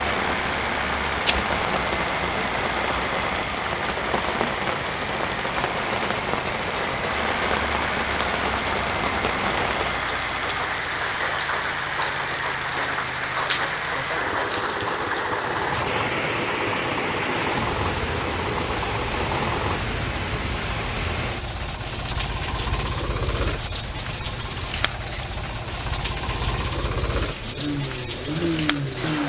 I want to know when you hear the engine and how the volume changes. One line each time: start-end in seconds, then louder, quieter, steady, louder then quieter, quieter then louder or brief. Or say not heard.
0.0-29.2 steady.